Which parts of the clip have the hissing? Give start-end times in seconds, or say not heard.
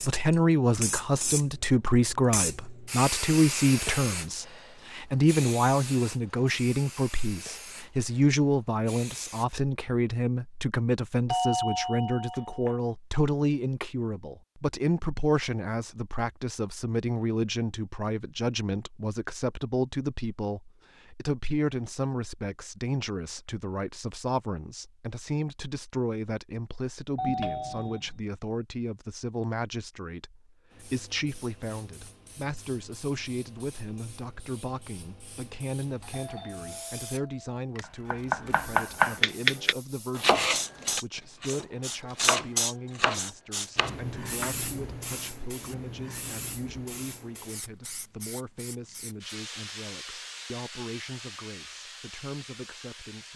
0.0-9.4, 30.7-53.3.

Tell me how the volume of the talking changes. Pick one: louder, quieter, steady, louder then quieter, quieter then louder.
quieter.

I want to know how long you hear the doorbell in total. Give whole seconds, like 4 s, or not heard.
4 s.